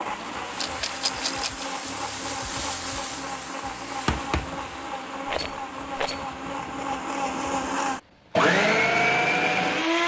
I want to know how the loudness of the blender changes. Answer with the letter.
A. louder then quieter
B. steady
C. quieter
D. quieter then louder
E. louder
E.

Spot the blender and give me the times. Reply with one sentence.
The blender can be heard from 0.0 to 10.0 s.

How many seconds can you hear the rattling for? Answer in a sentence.
The rattling can be heard for 2 seconds in total.